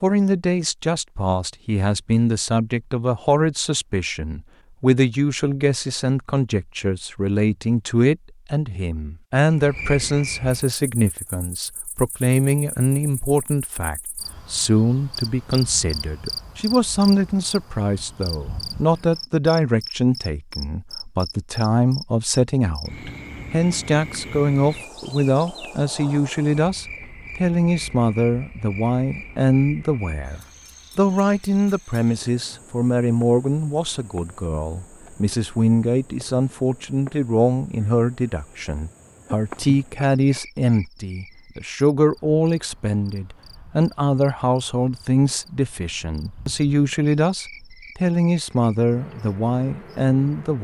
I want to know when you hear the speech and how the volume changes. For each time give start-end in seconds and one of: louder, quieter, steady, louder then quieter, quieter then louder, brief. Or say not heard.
0.0-50.6 steady.